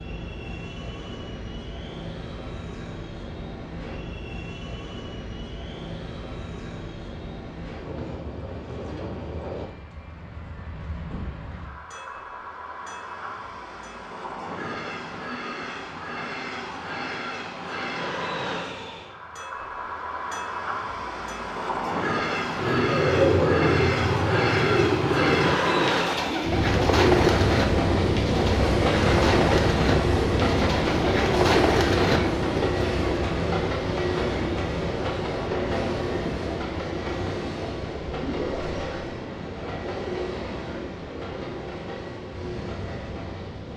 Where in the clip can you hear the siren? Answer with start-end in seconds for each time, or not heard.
not heard.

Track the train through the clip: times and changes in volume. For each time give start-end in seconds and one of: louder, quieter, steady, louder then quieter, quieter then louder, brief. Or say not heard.
0.0-43.7 louder then quieter.